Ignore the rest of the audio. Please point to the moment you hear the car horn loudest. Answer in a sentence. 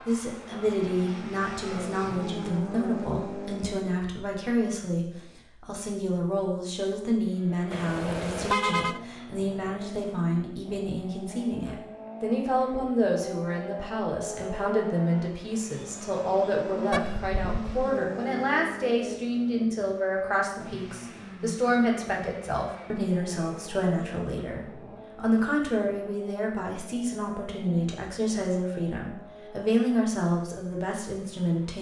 The loudest moment of the car horn is at 9 seconds.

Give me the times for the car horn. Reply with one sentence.
The car horn can be heard from 7.7 to 9.0 s and from 16.9 to 17.6 s.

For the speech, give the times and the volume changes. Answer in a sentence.
You can hear the speech from 0.1 to 31.7 s, at a steady volume.